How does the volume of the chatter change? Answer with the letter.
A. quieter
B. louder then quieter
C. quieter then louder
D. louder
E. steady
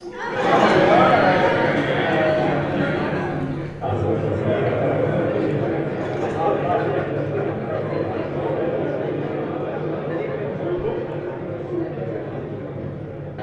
A.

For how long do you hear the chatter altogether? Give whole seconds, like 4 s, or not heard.
13 s.